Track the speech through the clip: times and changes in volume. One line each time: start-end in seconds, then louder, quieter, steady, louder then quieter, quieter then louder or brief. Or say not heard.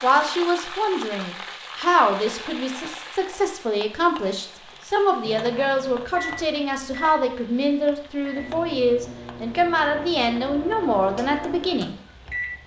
0.0-11.9 steady.